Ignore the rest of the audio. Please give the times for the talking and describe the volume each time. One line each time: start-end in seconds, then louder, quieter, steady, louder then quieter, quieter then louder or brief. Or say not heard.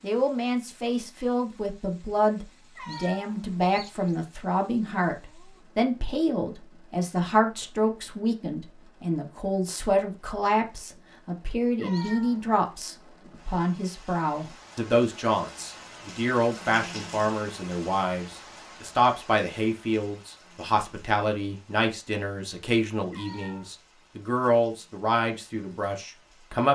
0.0-26.7 steady.